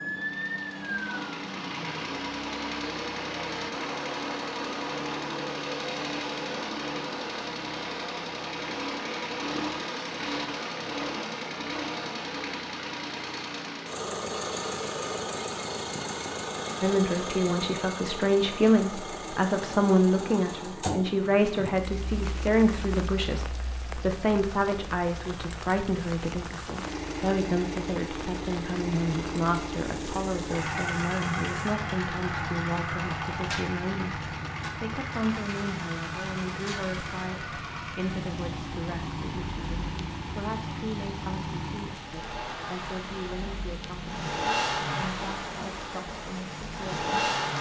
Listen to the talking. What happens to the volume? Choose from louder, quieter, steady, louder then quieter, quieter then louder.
quieter.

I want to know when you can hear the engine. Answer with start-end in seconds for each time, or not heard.
0.1-47.5.